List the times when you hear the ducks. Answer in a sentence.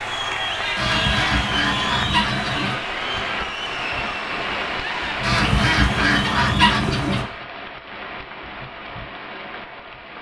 The ducks can be heard from 0.8 to 2.8 s and from 5.2 to 7.2 s.